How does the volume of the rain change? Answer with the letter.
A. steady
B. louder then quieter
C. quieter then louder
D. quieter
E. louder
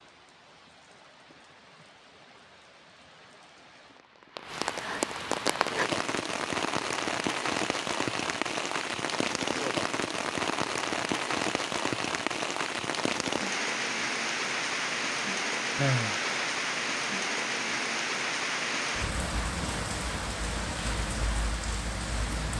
E.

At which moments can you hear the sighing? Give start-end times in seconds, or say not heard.
15.8-16.4.